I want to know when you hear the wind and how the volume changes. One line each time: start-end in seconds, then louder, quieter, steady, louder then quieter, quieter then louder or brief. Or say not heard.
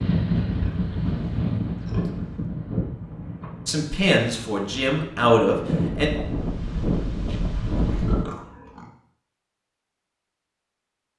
0.0-8.2 quieter then louder.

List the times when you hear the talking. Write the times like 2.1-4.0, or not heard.
3.6-6.1.